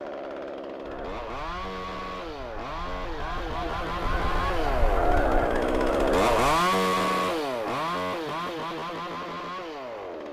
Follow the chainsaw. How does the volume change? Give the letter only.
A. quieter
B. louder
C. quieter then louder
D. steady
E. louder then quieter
E.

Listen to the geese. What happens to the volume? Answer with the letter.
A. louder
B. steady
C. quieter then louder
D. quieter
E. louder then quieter
A.